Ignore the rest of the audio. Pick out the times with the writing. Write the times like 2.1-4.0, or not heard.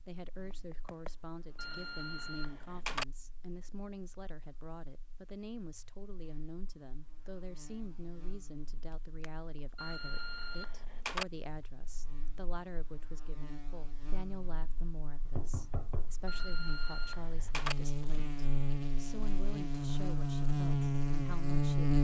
not heard.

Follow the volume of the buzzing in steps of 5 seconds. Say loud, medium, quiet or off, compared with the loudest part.
quiet, quiet, quiet, medium, loud.